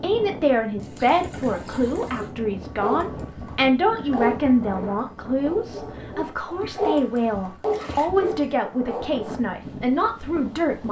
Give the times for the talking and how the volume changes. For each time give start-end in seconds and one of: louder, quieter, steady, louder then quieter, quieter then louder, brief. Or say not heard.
0.0-10.8 steady.